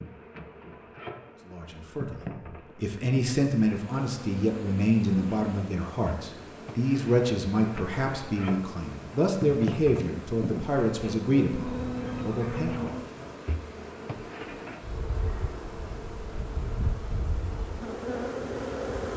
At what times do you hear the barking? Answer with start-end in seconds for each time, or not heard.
not heard.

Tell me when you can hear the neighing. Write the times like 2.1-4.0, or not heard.
11.6-12.9.